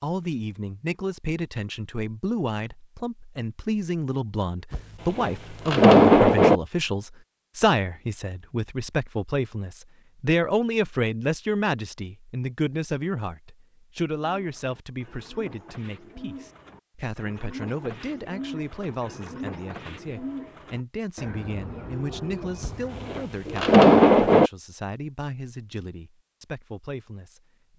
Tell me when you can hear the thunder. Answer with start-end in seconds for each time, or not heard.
4.7-6.6, 22.6-24.5.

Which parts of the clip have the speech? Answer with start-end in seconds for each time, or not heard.
0.0-27.7.